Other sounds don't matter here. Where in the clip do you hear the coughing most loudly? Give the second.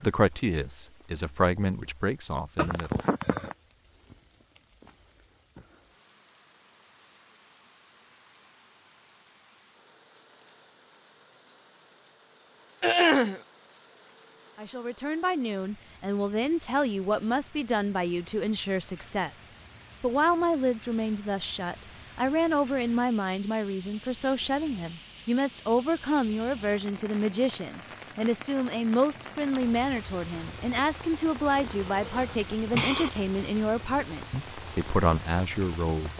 13 s.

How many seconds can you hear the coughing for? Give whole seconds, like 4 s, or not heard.
3 s.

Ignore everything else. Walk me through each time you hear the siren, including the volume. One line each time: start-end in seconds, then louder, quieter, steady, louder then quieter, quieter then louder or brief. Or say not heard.
not heard.